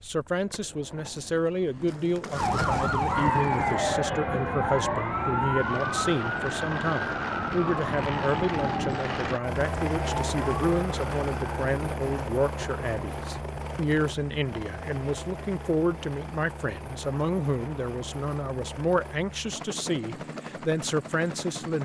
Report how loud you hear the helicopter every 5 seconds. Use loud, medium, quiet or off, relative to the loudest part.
medium, loud, loud, medium, medium.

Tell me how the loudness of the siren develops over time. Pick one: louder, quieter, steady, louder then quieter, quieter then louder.
quieter.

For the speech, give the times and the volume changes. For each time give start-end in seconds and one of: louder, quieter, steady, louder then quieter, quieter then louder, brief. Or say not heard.
0.0-21.8 steady.